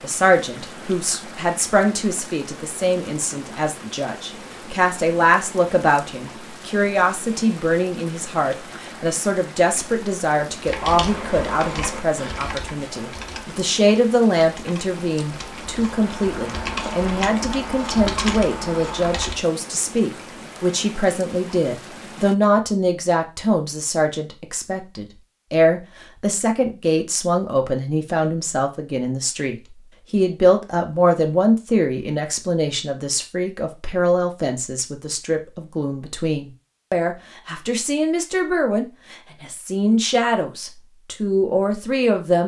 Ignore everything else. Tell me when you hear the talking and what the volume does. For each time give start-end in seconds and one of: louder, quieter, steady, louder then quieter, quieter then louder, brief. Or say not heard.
0.0-42.4 steady.